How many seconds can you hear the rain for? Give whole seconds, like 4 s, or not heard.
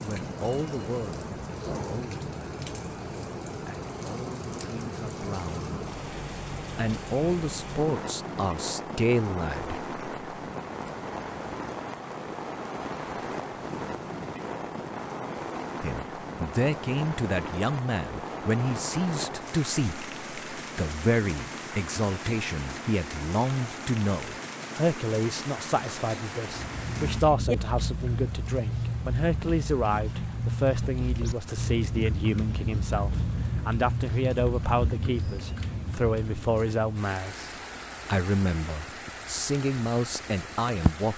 41 s.